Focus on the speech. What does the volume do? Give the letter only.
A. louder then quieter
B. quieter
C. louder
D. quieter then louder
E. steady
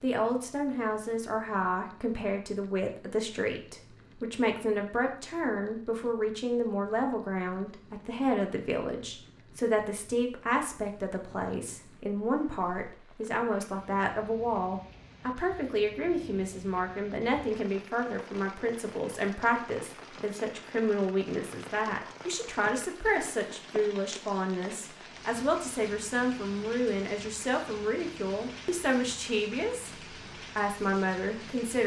E.